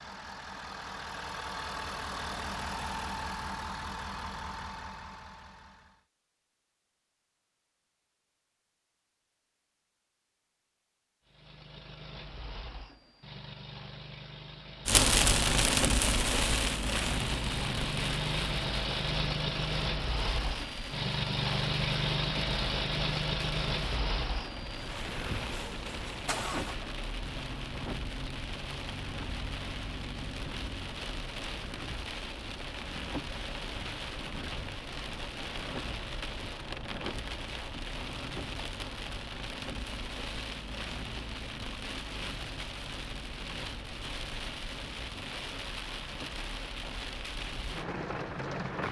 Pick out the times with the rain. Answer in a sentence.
The rain can be heard from 14.8 to 48.8 s.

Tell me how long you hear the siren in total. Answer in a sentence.
You can't hear the siren here.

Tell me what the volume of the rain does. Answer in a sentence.
The loudness of the rain goes down.